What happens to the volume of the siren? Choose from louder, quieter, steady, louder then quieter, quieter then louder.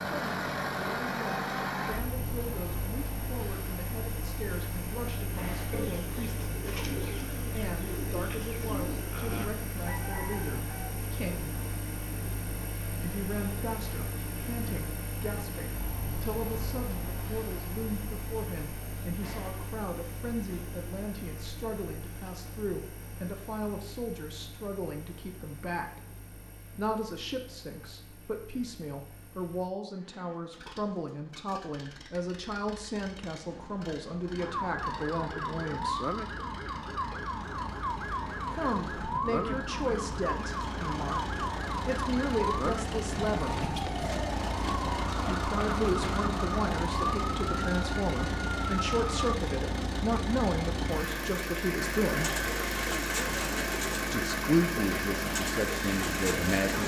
steady.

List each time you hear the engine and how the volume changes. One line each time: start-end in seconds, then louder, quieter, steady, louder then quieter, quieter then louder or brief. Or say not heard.
0.0-56.8 quieter then louder.